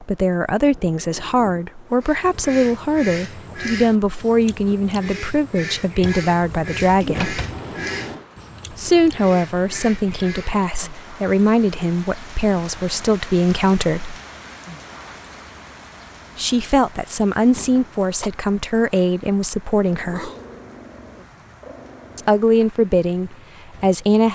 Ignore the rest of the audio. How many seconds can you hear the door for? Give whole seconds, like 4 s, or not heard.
2 s.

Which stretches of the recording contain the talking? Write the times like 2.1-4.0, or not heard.
0.0-7.3, 8.7-14.2, 16.4-20.3, 22.1-24.3.